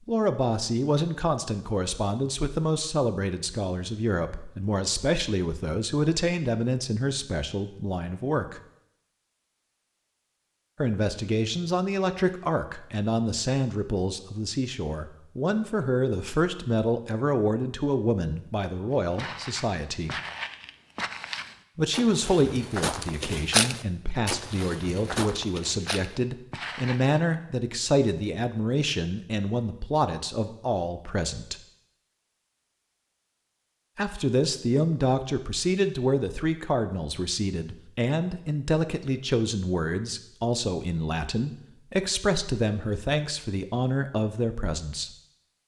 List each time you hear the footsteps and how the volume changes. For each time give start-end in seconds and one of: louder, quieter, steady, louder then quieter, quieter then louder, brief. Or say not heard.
19.1-27.2 louder then quieter.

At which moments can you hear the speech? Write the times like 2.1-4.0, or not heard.
0.1-8.6, 10.8-20.1, 21.8-31.6, 34.0-45.1.